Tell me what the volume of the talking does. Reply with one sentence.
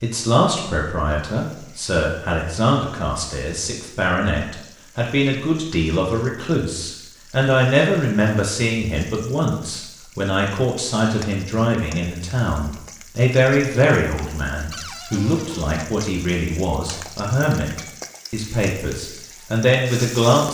The loudness of the talking stays about the same.